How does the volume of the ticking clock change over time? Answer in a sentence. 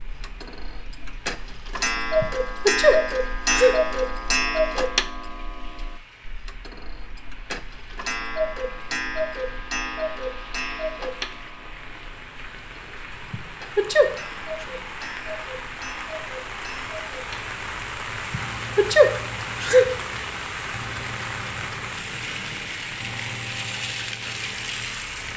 The loudness of the ticking clock goes down.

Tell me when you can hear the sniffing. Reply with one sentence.
You can hear the sniffing from 2.2 to 3.8 s, from 13.3 to 14.7 s and from 18.3 to 19.9 s.